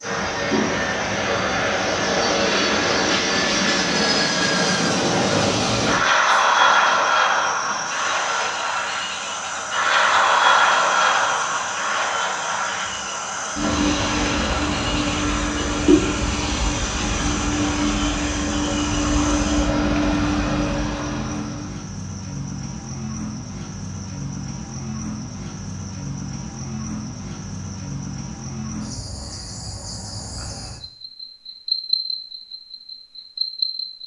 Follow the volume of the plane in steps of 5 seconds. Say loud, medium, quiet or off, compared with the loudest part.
loud, loud, loud, loud, medium, off, off.